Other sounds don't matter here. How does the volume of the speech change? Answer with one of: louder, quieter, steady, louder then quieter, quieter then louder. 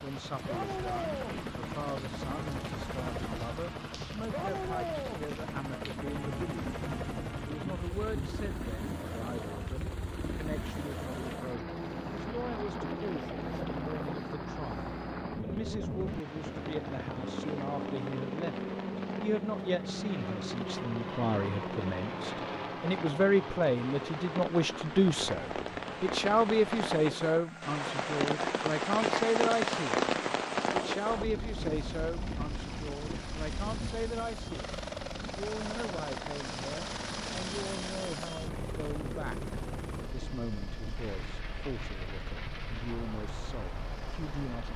louder then quieter.